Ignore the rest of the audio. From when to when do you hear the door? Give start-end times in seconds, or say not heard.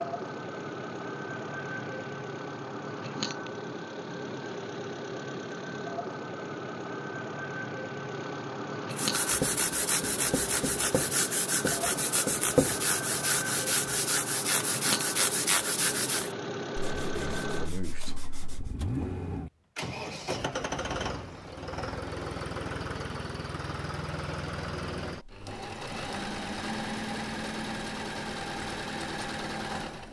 not heard.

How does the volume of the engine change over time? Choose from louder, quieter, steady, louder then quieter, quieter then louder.
steady.